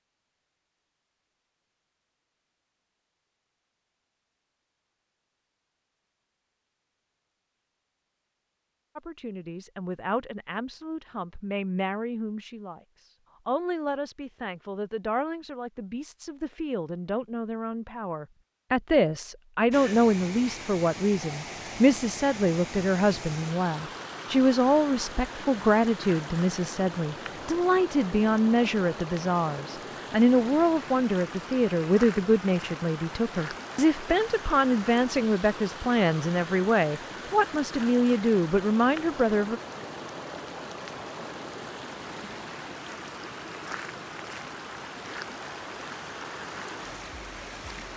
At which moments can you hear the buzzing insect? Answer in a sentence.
The buzzing insect can't be heard in this clip.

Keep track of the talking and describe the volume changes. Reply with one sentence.
The volume of the talking goes up.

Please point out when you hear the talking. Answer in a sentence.
The talking can be heard from 8.9 to 12.8 s and from 13.4 to 39.6 s.